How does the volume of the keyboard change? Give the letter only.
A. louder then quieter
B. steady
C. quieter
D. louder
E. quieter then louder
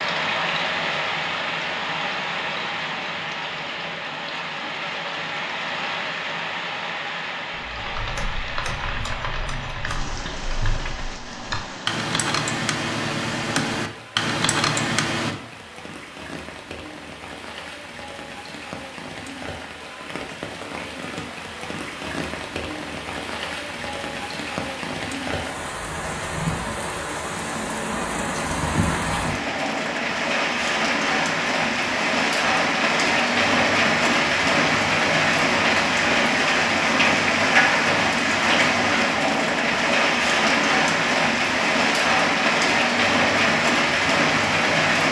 D.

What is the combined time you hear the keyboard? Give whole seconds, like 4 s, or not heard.
8 s.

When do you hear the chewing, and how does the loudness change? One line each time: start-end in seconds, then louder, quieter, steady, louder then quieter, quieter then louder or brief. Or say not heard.
not heard.